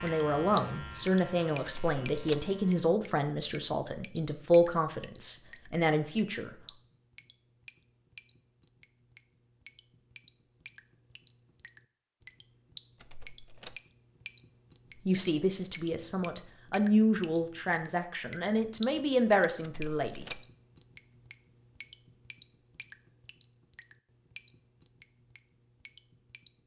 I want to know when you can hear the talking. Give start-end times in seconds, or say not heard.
0.0-6.5, 15.1-20.2.